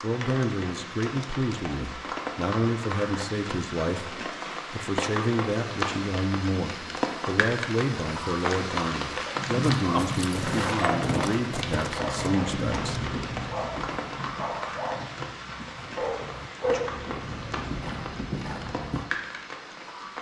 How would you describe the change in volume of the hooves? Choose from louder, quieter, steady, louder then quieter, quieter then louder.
quieter then louder.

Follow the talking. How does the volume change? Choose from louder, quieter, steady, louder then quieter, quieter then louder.
steady.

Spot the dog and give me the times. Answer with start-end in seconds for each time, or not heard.
9.2-15.2, 15.9-16.8.